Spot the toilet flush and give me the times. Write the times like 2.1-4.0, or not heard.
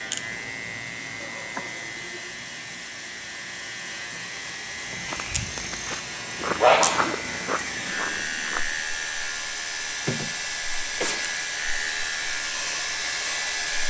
not heard.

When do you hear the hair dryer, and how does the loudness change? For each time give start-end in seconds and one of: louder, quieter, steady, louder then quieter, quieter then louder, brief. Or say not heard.
0.0-13.8 louder.